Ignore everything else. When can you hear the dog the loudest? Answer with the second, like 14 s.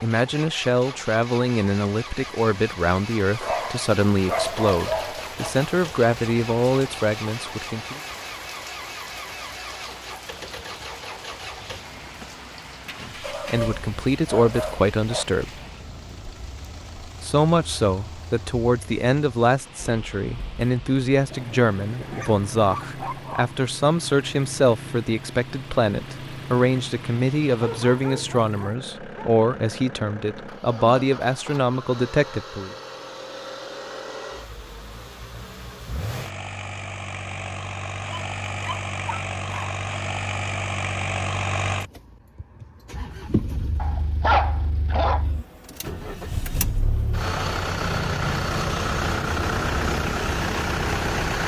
44 s.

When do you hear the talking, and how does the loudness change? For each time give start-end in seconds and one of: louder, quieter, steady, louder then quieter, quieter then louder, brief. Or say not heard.
0.0-8.0 steady
13.0-15.5 brief
17.2-32.8 steady.